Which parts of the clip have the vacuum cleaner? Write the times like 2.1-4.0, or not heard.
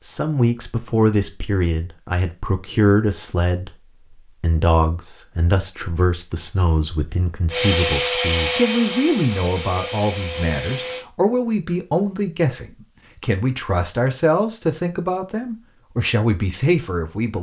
7.5-11.1.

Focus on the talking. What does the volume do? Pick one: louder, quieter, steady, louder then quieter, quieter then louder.
steady.